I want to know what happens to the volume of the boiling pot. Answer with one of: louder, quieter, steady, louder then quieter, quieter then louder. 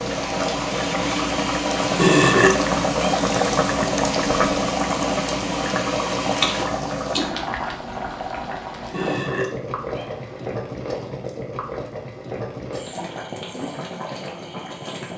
quieter.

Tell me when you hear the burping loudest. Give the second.
2 s.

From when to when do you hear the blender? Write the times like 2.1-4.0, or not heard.
0.0-6.7.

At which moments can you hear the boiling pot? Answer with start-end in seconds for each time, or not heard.
0.0-15.1.